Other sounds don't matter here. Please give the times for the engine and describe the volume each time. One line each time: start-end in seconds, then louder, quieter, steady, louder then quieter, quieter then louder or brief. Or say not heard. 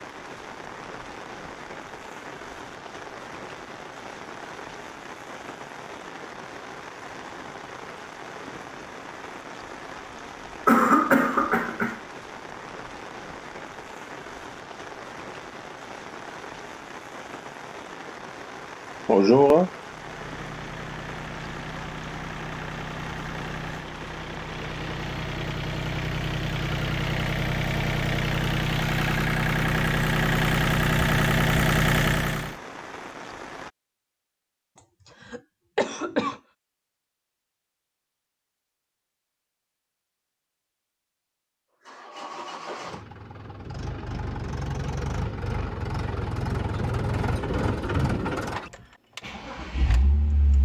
19.8-32.5 louder
41.9-50.5 louder then quieter.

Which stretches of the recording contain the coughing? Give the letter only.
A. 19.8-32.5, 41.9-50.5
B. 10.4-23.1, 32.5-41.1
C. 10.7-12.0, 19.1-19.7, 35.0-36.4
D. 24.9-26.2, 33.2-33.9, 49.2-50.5
C.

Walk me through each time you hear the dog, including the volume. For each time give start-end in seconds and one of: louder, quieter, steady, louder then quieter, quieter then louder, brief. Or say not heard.
not heard.